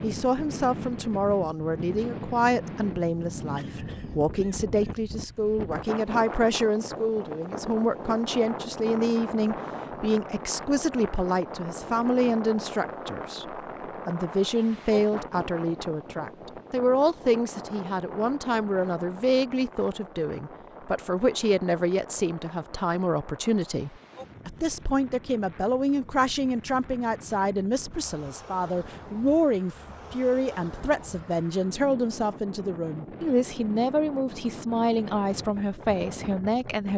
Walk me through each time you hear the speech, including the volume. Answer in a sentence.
You can hear the speech from 0.0 to 36.9 s, at a steady volume.